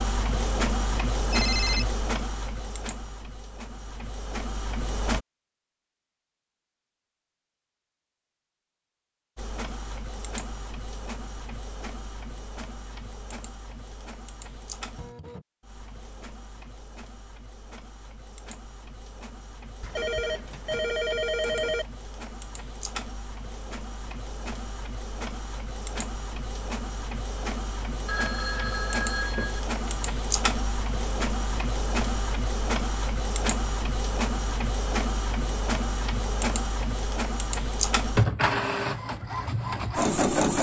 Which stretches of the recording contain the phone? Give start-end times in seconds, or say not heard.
1.3-1.9, 19.8-21.9, 28.1-30.0.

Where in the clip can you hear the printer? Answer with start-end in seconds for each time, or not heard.
0.0-5.2, 9.3-40.5.